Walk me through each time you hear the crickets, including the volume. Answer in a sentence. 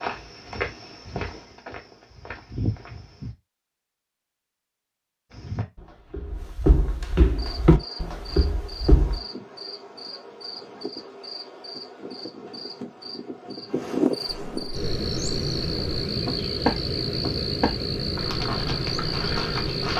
You can hear the crickets from 7.2 to 19.9 s, getting louder.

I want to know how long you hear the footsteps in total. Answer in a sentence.
You can hear the footsteps for 13 seconds altogether.